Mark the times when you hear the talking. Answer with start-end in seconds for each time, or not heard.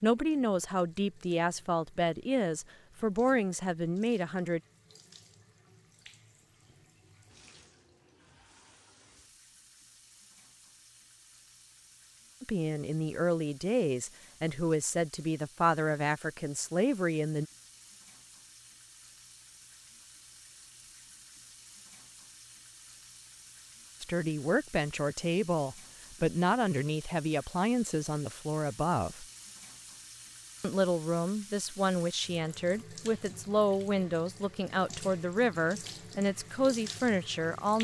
0.0-4.6, 12.4-17.4, 24.0-29.2, 30.6-37.7.